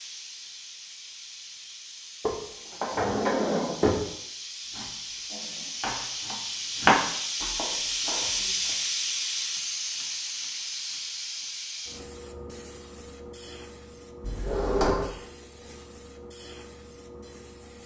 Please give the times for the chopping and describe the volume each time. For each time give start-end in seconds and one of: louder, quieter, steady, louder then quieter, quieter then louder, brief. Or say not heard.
4.7-8.8 louder then quieter.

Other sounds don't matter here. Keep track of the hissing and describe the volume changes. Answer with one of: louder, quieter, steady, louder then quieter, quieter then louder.
louder then quieter.